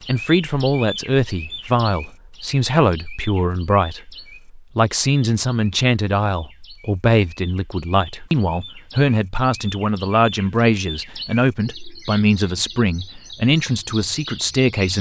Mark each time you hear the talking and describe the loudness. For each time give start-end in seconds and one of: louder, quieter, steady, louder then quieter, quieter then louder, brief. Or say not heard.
0.1-14.9 steady.